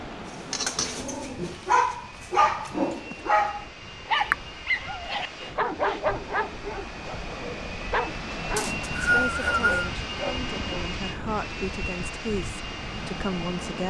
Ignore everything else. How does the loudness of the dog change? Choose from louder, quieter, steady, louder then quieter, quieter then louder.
quieter.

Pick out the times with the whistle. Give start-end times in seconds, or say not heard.
8.6-9.9.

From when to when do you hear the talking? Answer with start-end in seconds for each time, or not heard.
9.0-13.8.